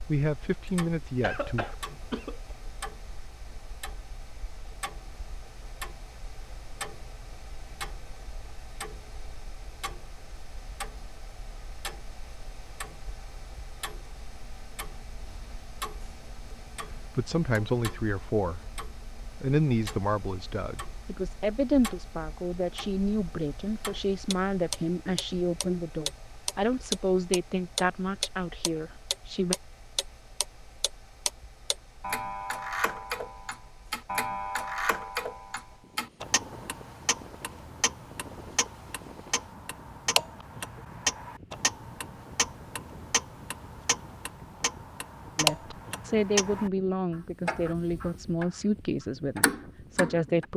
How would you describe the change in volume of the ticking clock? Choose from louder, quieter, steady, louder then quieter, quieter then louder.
louder.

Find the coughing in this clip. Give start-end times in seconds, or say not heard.
1.2-2.5.